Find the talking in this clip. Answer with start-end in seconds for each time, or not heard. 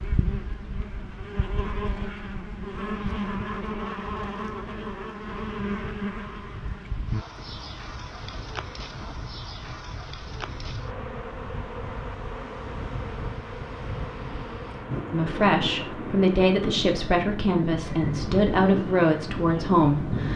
15.1-20.3.